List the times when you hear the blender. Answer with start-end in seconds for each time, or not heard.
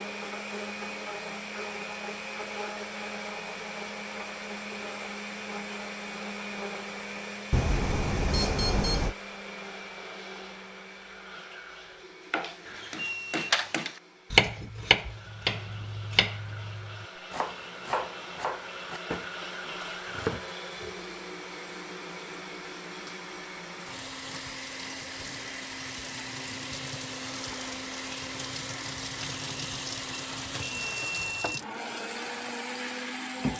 0.0-33.5.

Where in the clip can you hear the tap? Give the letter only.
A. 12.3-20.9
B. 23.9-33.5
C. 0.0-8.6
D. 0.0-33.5
B.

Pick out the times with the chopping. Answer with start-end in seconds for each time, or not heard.
12.3-20.9.